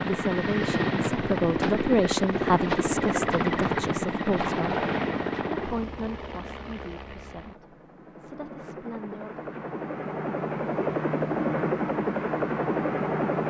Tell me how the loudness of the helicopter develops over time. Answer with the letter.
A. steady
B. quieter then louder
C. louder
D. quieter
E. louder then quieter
B.